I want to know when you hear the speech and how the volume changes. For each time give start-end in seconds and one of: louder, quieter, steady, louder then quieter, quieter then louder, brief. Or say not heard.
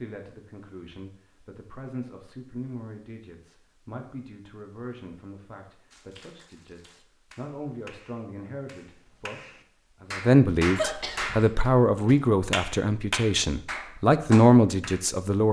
0.0-15.4 louder.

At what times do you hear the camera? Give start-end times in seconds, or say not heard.
not heard.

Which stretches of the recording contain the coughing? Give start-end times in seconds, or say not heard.
10.8-11.5.